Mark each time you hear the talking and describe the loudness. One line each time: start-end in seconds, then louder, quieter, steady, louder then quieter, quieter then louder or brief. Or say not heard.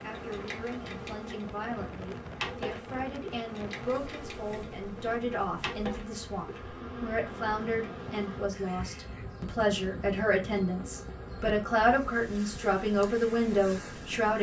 0.0-14.3 louder.